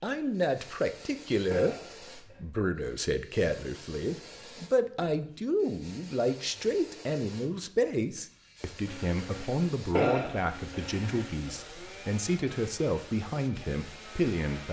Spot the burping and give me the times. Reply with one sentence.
You can hear the burping from 1.5 to 2.4 s and from 9.9 to 11.2 s.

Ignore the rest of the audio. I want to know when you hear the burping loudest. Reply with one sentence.
The volume of the burping peaks at 10 seconds.